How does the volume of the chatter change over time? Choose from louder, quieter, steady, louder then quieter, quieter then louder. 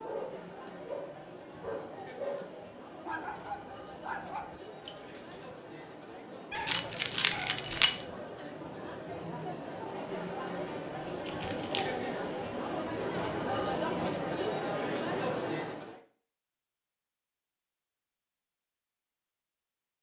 louder.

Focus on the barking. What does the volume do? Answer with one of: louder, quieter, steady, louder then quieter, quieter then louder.
quieter then louder.